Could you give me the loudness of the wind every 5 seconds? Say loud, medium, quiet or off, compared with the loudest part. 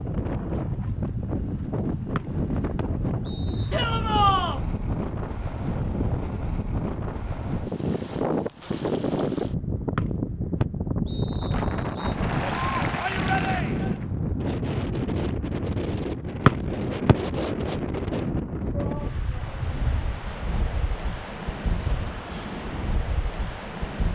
loud, loud, loud, loud, medium.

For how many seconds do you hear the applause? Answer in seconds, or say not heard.
2 s.